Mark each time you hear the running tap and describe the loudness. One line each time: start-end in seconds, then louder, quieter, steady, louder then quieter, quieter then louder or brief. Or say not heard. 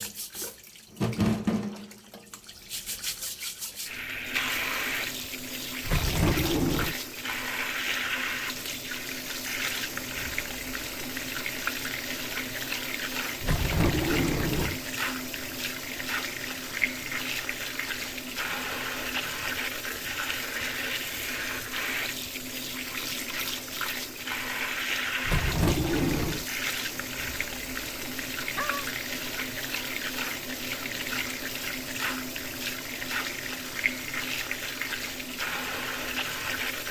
0.0-36.8 steady.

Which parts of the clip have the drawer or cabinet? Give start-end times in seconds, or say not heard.
5.8-7.0, 13.4-14.8, 25.2-26.4.